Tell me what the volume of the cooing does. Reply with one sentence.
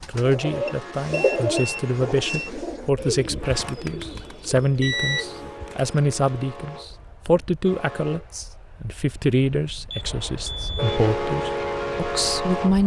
The volume of the cooing goes down.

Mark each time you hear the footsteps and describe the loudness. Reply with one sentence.
You can't hear the footsteps here.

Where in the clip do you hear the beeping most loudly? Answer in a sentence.
The loudest moment of the beeping is at 5 seconds.